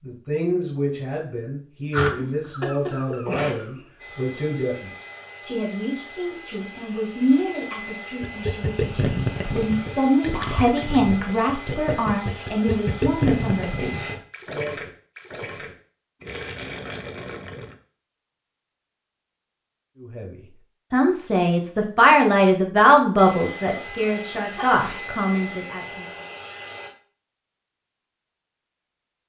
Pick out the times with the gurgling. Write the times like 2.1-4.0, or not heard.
8.2-17.8.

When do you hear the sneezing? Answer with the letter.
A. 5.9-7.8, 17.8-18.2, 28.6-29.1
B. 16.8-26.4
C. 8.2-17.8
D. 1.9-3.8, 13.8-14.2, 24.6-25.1
D.